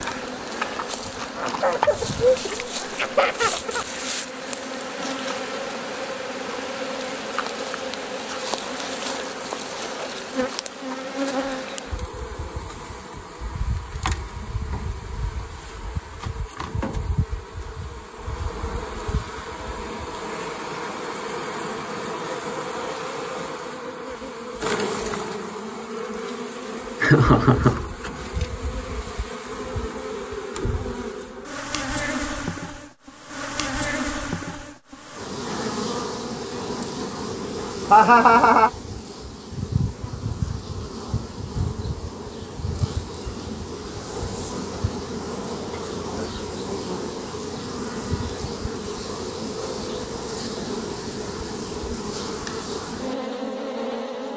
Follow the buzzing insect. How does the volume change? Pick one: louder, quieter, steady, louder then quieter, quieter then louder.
steady.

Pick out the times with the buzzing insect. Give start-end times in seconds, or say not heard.
0.0-54.3.